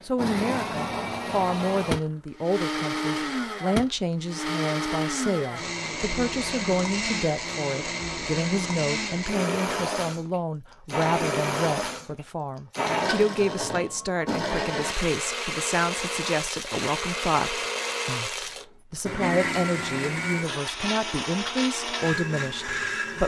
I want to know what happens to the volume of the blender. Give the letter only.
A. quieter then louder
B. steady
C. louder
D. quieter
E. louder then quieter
B.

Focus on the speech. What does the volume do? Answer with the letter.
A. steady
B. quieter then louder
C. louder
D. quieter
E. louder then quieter
A.